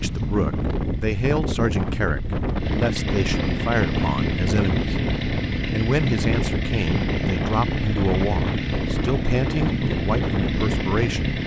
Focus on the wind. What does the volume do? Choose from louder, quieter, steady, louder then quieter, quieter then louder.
steady.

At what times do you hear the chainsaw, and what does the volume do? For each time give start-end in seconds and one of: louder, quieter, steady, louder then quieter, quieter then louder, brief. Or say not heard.
0.0-11.4 louder.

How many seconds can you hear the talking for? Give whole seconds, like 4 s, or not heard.
11 s.